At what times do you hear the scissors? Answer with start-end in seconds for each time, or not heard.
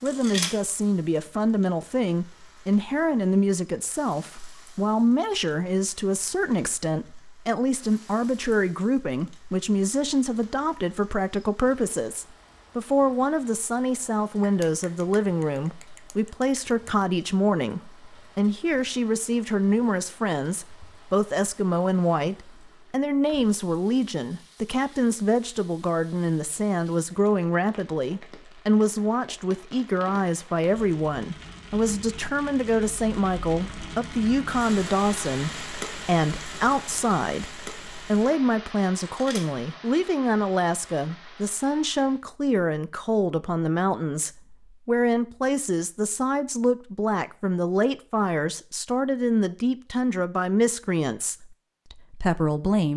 0.1-0.6, 39.0-39.5.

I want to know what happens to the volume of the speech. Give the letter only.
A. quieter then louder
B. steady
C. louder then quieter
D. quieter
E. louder
B.